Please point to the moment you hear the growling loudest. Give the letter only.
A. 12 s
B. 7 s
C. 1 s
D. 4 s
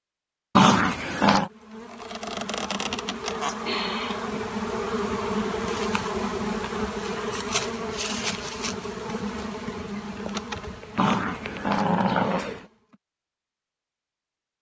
C.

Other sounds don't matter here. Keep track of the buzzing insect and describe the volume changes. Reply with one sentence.
The volume of the buzzing insect goes down.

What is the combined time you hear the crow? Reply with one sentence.
The crow can't be heard in this clip.